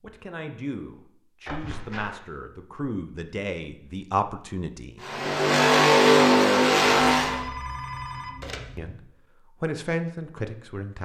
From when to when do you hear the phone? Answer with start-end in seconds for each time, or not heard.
1.4-2.2, 7.2-8.9.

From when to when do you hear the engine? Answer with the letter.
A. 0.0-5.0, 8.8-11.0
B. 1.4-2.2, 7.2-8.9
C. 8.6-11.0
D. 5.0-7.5
D.